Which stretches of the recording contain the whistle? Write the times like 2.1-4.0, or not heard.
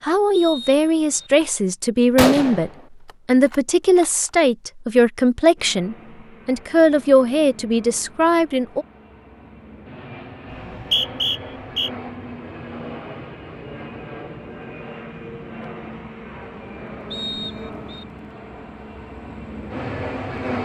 0.3-1.3, 10.7-11.9, 17.1-18.1.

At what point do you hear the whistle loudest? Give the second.
11 s.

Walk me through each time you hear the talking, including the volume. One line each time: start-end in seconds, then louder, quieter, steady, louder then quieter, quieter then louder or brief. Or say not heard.
0.0-8.8 steady.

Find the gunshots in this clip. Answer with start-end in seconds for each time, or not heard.
2.1-2.8, 3.5-4.1.